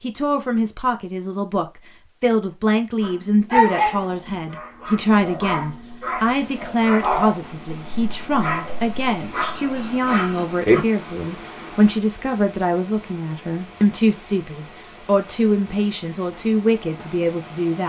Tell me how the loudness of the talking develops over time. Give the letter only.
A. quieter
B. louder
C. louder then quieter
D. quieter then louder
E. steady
E.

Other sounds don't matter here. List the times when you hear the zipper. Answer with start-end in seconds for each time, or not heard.
not heard.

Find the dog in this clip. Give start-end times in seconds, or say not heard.
3.0-10.8.